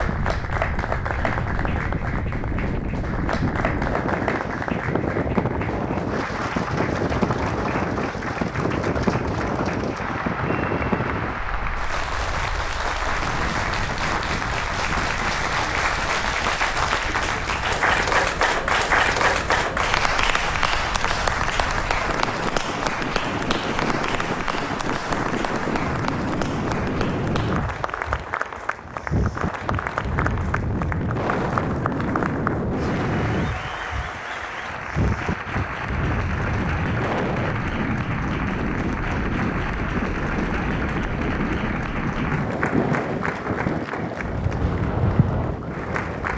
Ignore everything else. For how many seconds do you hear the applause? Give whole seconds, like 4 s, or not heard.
46 s.